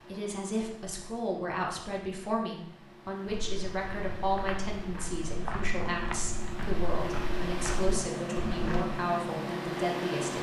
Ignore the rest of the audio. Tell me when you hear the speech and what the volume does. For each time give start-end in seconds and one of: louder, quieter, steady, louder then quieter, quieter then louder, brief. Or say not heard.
0.0-10.3 steady.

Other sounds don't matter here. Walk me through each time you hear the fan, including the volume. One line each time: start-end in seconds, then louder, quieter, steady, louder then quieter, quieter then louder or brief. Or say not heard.
0.0-10.3 louder.